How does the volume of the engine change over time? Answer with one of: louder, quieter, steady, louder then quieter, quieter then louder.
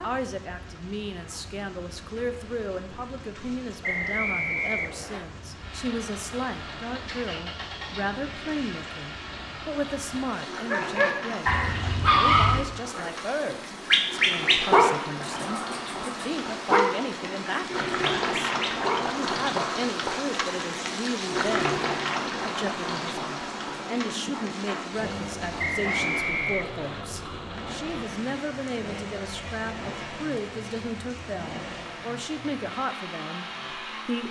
louder then quieter.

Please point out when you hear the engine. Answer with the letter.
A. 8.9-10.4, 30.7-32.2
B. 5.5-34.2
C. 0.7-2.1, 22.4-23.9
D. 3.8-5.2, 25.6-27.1
B.